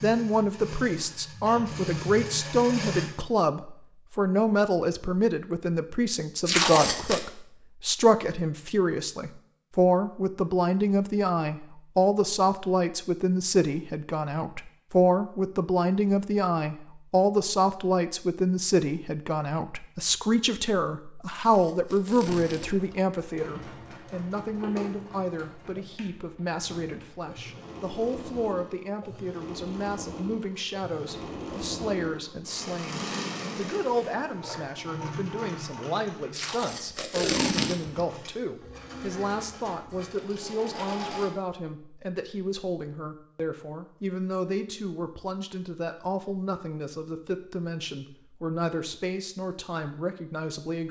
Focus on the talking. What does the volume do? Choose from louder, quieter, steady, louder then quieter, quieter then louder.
quieter.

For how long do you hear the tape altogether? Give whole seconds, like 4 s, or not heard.
4 s.